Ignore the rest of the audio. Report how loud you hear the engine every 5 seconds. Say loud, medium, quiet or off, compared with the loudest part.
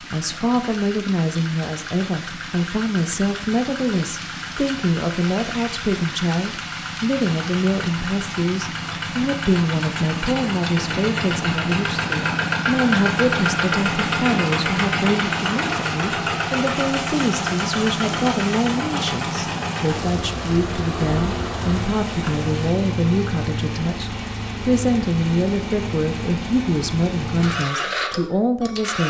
quiet, medium, loud, loud, medium, medium.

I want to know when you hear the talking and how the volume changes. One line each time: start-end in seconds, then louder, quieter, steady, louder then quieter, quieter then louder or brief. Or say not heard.
0.0-29.0 steady.